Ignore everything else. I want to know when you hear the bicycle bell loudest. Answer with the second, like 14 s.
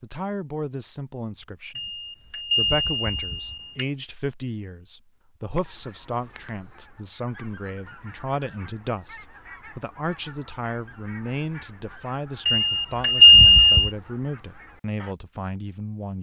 13 s.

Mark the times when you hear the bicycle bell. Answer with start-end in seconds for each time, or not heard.
1.8-3.9, 5.5-6.7, 12.4-13.9.